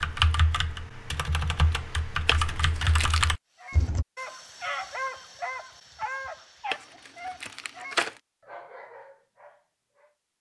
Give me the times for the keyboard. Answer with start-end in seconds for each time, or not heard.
0.0-4.0.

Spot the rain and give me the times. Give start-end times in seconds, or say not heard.
not heard.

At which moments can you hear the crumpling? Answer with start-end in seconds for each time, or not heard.
2.2-3.3, 6.7-8.2.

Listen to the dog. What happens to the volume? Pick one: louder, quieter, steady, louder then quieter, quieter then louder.
quieter.